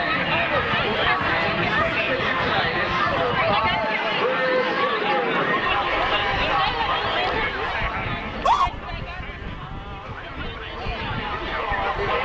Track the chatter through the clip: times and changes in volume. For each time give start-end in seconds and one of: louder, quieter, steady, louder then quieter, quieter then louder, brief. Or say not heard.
0.0-12.2 quieter.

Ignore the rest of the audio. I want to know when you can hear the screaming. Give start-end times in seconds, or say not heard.
8.2-8.7.